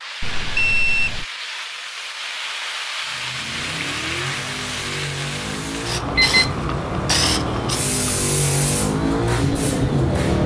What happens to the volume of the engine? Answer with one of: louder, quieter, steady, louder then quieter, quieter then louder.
louder.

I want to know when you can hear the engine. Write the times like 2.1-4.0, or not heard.
3.0-10.4.